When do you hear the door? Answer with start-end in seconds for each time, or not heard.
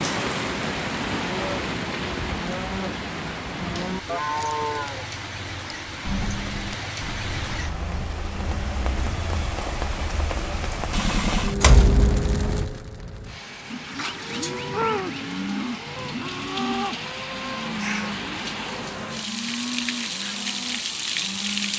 11.6-12.7.